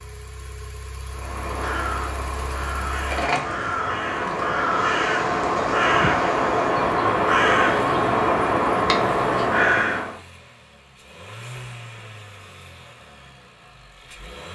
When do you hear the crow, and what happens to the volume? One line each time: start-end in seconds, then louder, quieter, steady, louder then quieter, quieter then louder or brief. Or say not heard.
1.1-10.2 louder.